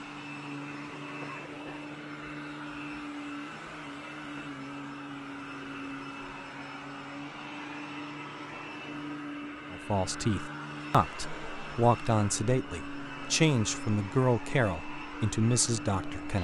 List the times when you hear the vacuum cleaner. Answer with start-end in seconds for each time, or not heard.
0.0-16.3.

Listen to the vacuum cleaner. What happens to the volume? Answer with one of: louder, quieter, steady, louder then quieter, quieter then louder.
steady.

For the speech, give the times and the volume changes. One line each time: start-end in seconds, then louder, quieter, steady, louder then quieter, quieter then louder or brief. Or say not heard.
9.7-16.3 steady.